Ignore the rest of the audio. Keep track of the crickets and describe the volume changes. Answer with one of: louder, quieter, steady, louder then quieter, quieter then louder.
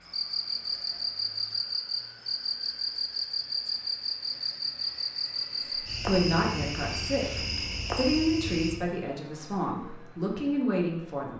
steady.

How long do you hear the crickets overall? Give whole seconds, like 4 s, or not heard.
9 s.